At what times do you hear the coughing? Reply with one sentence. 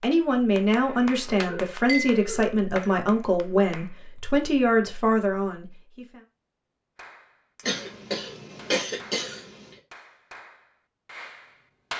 You can hear the coughing from 0.7 to 2.5 s and from 7.7 to 9.4 s.